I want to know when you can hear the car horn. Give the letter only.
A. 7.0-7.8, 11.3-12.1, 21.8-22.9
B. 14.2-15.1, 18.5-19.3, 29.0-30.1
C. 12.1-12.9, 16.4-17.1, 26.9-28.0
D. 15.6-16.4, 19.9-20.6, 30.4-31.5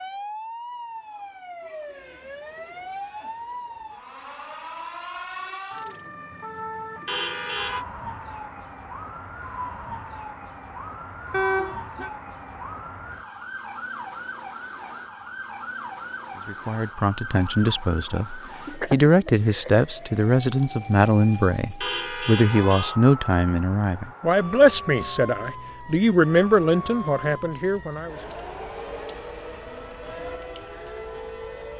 A.